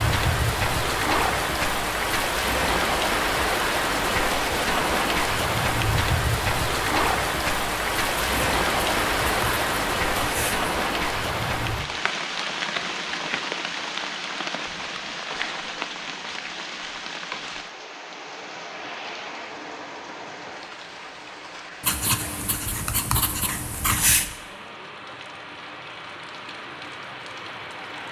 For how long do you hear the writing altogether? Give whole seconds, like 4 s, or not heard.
5 s.